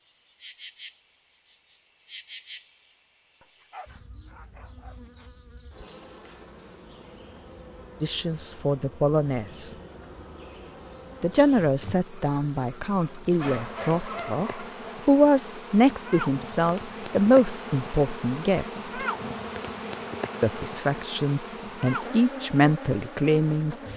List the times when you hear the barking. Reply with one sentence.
The barking can be heard from 3.4 to 5.2 s and from 13.3 to 14.8 s.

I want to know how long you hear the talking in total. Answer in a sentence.
The talking can be heard for 13 seconds in total.